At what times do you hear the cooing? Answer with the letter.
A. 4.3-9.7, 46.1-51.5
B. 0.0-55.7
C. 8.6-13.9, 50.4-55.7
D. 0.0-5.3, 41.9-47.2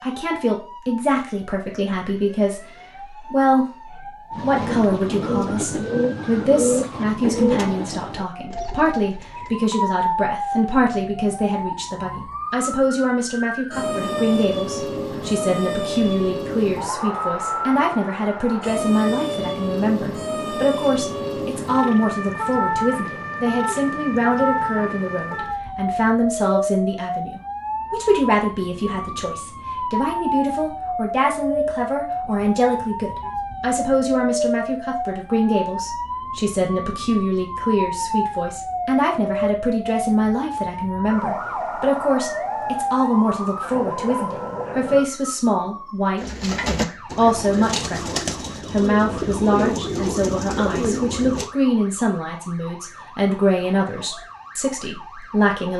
A.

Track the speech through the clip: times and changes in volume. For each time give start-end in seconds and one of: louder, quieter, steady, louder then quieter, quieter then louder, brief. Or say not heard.
0.0-55.7 steady.